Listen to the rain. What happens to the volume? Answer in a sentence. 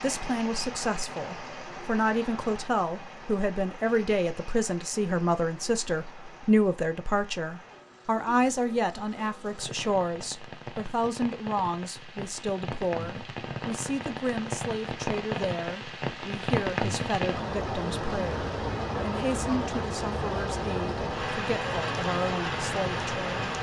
The volume of the rain goes down, then up.